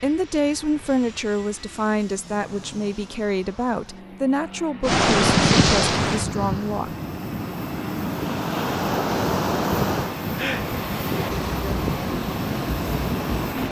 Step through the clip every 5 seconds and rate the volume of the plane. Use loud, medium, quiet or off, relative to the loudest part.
quiet, loud, loud.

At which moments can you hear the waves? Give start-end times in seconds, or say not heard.
4.8-13.6.